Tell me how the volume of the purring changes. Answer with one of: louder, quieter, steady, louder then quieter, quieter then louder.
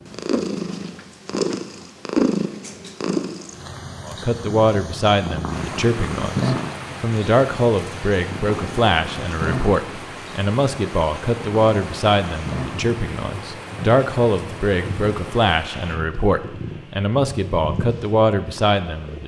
quieter.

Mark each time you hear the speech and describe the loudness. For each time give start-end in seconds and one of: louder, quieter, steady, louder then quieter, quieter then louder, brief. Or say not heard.
4.0-19.2 steady.